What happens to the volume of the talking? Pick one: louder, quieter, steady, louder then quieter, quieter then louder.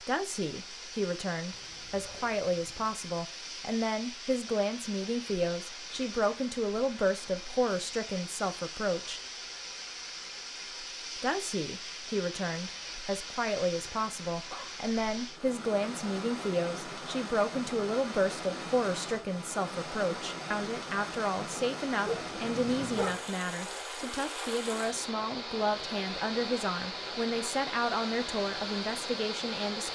steady.